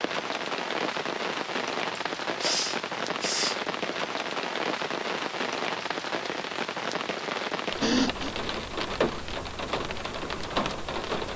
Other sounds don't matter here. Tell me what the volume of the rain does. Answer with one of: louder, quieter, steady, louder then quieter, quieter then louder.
steady.